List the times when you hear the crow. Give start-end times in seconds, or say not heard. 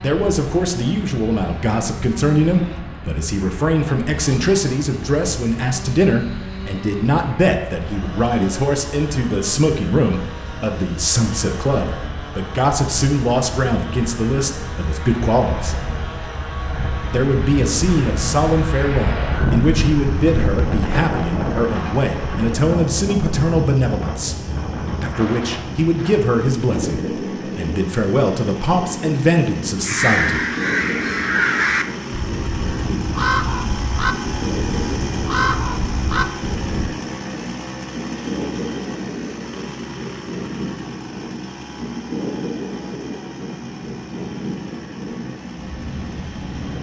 29.9-37.0.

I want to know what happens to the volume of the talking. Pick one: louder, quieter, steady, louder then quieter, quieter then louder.
steady.